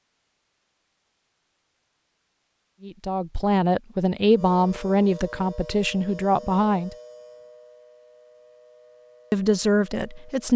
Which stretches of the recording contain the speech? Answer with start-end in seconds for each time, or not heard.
2.8-7.0, 9.3-10.5.